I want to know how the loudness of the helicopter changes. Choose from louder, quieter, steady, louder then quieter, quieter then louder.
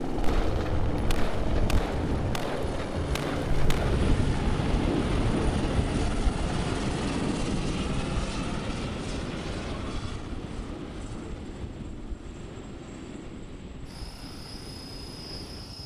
quieter.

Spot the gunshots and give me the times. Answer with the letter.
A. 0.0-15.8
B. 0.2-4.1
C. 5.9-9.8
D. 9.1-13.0
B.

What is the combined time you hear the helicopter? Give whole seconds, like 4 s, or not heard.
16 s.